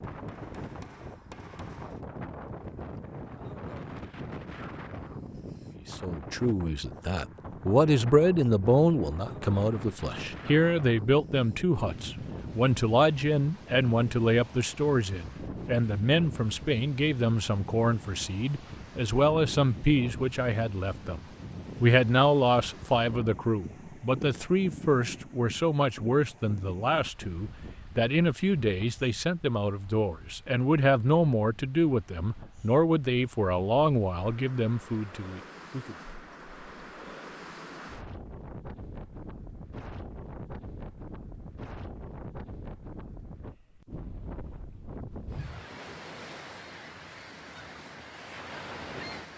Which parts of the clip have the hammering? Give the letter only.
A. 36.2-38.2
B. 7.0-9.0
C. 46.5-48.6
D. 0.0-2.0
D.